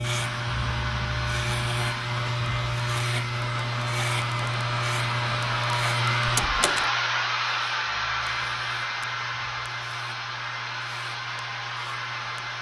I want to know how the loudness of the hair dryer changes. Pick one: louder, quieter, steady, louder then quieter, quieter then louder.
louder then quieter.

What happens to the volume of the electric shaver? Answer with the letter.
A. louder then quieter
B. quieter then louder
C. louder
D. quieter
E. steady
D.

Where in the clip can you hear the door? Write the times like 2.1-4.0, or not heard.
6.2-6.9.